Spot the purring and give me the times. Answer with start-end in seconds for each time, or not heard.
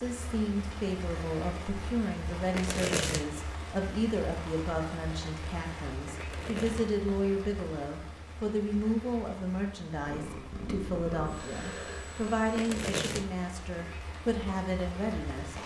10.0-12.7.